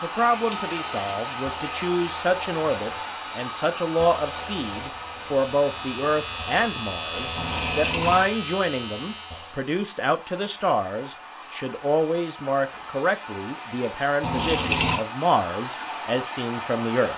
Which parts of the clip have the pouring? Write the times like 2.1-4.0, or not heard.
0.5-1.1, 7.3-8.3, 14.2-15.0.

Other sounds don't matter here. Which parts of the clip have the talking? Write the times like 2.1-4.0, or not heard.
0.0-17.1.